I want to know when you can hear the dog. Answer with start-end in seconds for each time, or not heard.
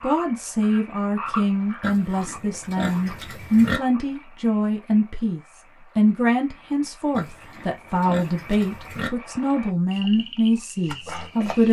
not heard.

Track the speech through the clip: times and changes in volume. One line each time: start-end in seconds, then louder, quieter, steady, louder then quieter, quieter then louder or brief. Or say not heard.
0.0-11.6 steady.